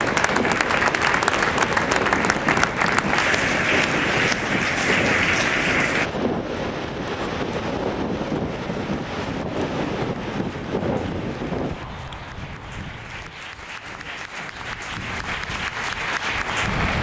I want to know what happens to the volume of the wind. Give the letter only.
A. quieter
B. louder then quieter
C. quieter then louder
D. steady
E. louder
A.